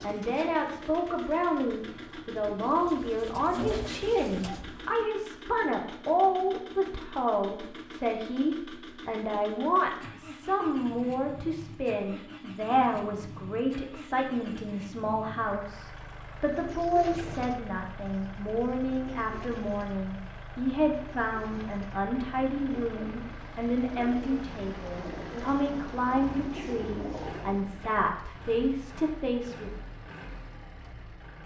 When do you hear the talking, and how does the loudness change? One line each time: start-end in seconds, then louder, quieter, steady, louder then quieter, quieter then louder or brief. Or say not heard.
0.0-29.7 steady.